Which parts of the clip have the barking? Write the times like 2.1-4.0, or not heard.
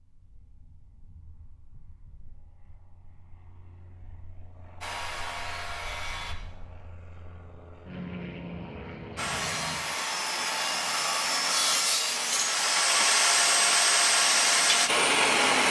not heard.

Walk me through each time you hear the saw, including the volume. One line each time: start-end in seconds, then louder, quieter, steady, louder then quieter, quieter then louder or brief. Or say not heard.
4.8-6.3 brief
9.2-15.6 louder.